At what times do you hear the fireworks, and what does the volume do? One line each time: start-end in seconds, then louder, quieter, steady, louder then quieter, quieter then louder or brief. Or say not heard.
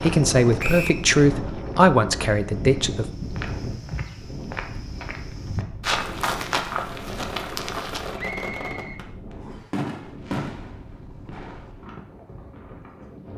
6.8-12.1 louder then quieter.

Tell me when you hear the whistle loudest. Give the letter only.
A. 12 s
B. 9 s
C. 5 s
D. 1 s
D.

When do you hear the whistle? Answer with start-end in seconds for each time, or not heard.
0.6-1.0, 8.2-9.7.